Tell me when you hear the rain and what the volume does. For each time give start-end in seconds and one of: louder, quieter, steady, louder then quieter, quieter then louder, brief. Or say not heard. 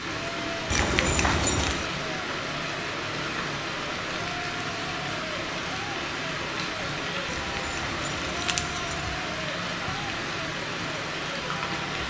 0.0-12.0 steady.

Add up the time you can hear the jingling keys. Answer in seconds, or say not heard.
3 s.